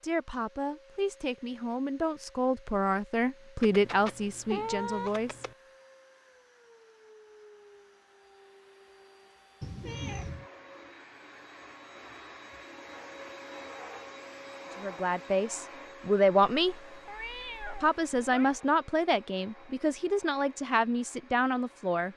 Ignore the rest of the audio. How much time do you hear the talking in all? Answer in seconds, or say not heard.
12 s.